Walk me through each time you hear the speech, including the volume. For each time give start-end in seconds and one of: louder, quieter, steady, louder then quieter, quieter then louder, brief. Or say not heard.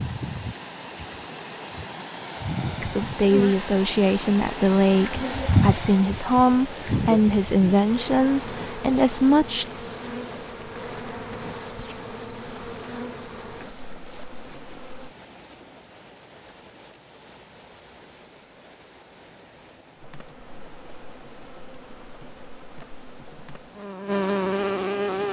2.8-9.7 steady.